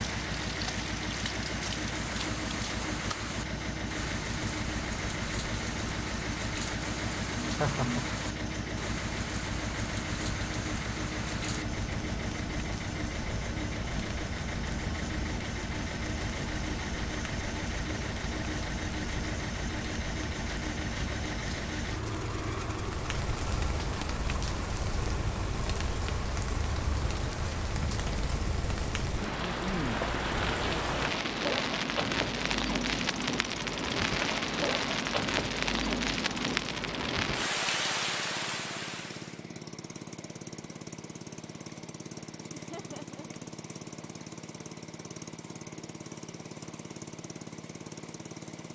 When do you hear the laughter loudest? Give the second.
8 s.